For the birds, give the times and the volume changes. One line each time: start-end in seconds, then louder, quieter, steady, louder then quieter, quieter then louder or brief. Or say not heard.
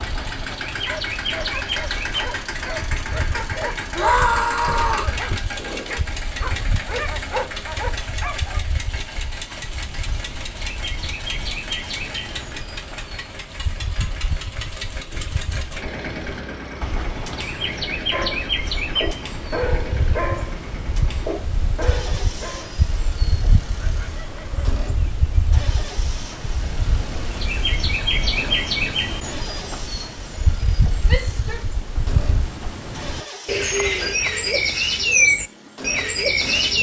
0.0-36.7 louder.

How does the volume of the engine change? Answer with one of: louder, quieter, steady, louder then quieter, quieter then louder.
quieter.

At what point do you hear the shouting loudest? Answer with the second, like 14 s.
4 s.